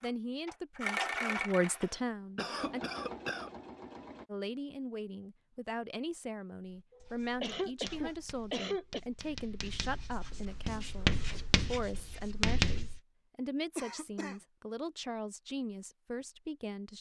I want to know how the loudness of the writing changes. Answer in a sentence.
The loudness of the writing goes up.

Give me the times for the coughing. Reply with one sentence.
The coughing can be heard from 1.6 to 3.5 s, from 6.9 to 9.0 s and from 13.8 to 14.4 s.